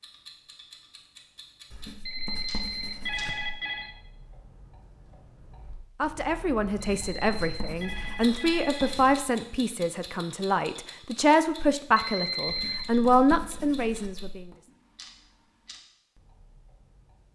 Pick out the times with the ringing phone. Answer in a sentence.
You can hear the ringing phone from 2.0 to 3.9 s, from 6.8 to 9.1 s and from 11.9 to 12.8 s.